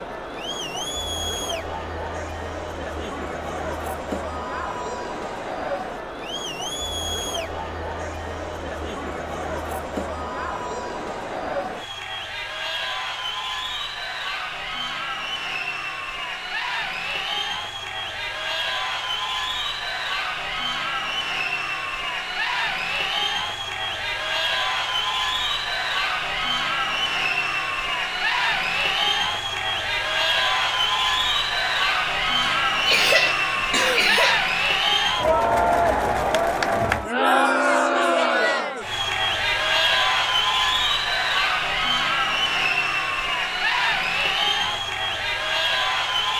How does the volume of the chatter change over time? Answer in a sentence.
The volume of the chatter goes up.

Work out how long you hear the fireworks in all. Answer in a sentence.
You can't hear the fireworks here.